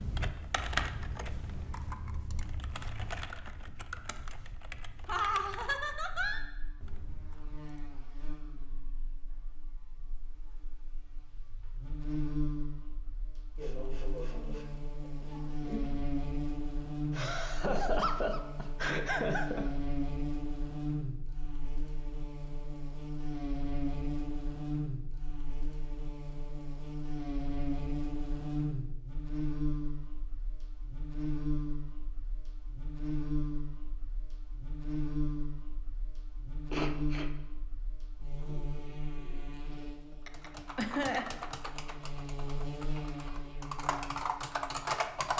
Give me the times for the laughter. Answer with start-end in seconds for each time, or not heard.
5.0-6.5, 17.1-19.7, 40.2-41.2.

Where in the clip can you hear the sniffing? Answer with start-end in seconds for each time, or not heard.
13.6-15.9, 36.7-37.3.